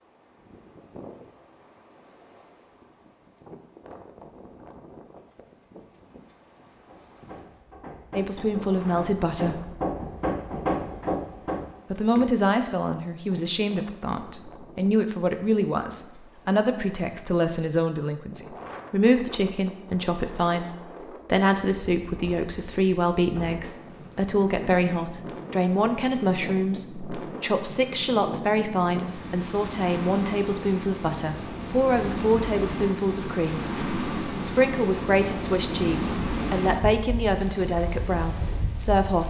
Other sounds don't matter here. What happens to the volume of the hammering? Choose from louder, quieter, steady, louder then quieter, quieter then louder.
louder.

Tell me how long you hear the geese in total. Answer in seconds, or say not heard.
not heard.